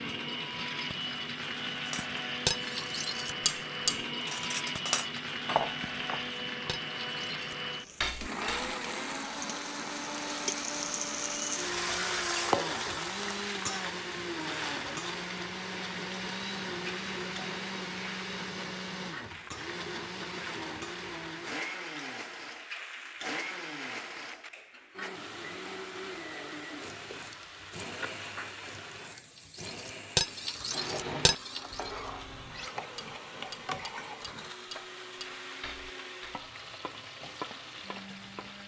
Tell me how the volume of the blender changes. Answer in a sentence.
The loudness of the blender goes down.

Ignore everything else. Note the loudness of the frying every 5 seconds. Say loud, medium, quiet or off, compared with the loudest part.
medium, medium, loud, medium, medium, medium, medium, medium.